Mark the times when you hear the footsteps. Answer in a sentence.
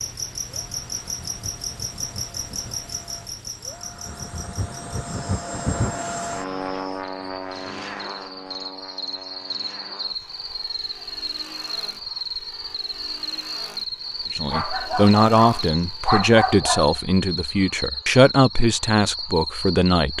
The footsteps can't be heard in this clip.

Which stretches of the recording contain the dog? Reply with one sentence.
You can hear the dog from 14.5 to 16.9 s.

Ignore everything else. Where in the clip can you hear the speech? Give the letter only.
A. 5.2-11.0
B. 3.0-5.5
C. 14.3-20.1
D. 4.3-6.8
C.